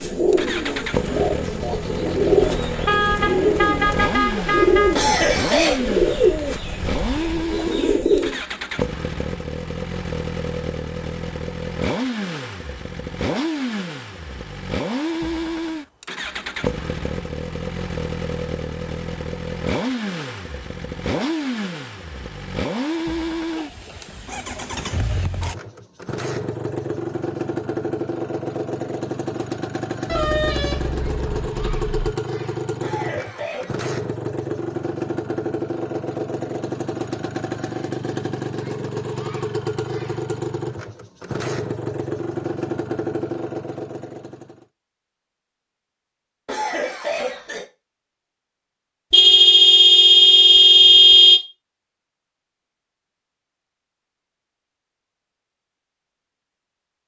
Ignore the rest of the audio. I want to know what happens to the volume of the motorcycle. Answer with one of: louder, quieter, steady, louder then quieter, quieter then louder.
steady.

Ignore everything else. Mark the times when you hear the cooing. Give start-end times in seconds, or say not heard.
0.0-8.4.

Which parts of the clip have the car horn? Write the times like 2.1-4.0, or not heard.
2.4-5.0, 30.1-32.1, 49.1-51.4.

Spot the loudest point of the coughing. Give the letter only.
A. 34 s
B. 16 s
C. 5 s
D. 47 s
C.